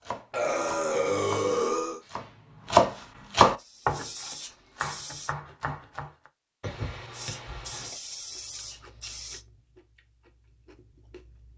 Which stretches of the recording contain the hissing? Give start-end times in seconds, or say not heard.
3.5-5.3, 7.1-9.4.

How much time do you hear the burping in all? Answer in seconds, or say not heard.
3 s.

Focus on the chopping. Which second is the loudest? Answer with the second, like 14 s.
3 s.